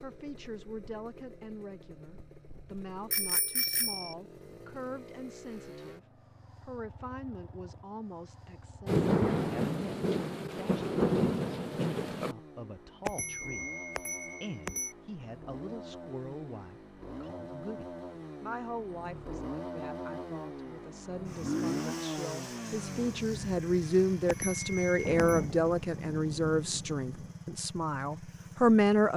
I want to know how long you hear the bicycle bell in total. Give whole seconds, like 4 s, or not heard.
4 s.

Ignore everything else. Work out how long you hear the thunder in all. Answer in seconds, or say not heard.
6 s.